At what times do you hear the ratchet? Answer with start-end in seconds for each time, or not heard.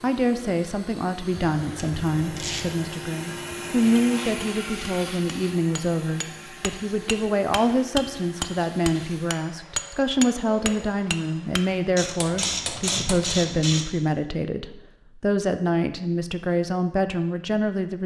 1.6-3.0, 11.9-13.8.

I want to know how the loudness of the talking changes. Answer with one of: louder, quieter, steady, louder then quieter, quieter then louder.
steady.